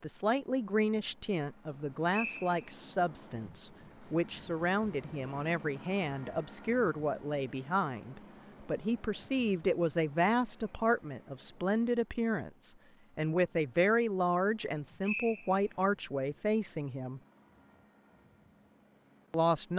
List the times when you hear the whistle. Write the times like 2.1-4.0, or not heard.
2.1-2.6, 15.0-15.8.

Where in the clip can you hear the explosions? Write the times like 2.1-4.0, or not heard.
not heard.